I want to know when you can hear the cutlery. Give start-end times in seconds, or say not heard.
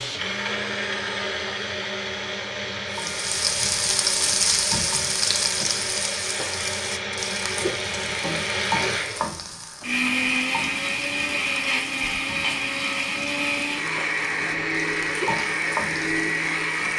not heard.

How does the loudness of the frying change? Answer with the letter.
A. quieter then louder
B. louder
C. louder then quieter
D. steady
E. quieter
A.